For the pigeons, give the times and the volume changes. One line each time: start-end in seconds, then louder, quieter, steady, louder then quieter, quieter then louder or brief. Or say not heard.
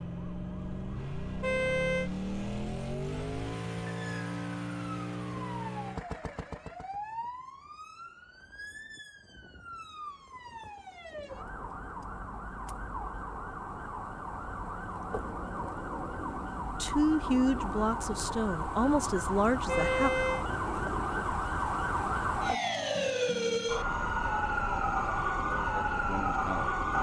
not heard.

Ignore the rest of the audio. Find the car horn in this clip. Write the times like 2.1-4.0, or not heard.
1.4-2.1, 19.6-20.4.